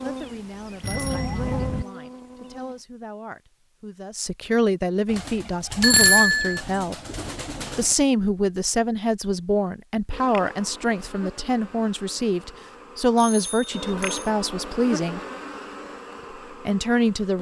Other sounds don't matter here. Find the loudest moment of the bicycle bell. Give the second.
6 s.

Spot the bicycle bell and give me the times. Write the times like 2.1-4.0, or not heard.
0.8-1.9, 5.8-6.6, 13.2-14.2.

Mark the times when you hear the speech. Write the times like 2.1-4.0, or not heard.
0.0-7.0, 7.8-15.2, 16.6-17.3.